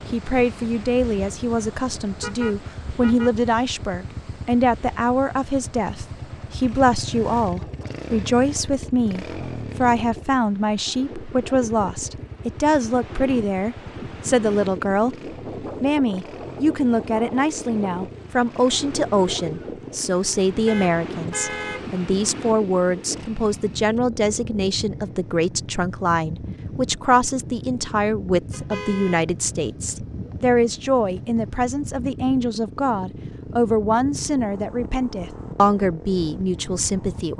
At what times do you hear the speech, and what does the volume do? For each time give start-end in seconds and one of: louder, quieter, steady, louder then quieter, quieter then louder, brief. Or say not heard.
0.1-37.3 steady.